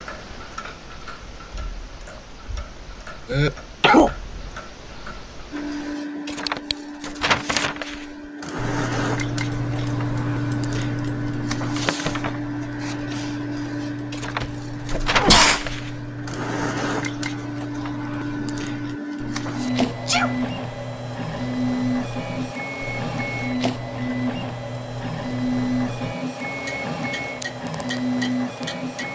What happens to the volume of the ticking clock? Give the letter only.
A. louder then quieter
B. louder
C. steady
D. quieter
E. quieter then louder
A.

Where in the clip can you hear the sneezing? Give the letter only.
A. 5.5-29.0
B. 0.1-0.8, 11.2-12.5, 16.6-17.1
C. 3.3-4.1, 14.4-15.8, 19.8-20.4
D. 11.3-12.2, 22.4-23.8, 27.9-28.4
C.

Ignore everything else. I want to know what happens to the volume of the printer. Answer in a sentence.
The loudness of the printer stays about the same.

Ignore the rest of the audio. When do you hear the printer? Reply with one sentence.
You can hear the printer from 5.5 to 29.0 s.